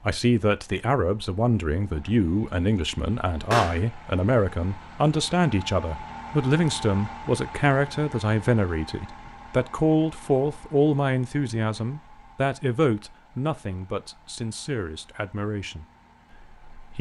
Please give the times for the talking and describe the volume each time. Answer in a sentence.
The talking can be heard from 0.1 to 16.9 s, getting quieter.